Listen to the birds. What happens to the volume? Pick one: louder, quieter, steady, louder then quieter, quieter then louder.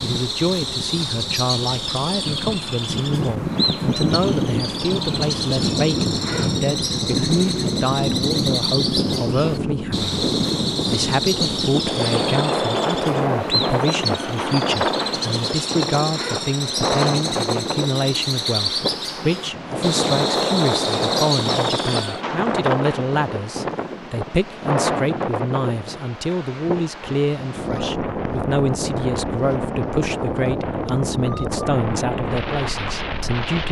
steady.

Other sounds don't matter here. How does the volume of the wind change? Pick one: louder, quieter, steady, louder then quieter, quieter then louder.
steady.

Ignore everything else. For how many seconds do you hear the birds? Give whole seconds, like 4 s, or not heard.
22 s.